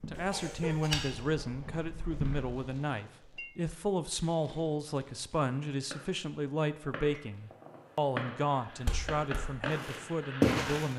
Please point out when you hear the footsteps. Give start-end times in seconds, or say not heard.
0.0-2.5, 8.8-10.9.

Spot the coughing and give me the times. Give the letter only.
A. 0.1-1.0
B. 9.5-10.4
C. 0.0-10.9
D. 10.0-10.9
A.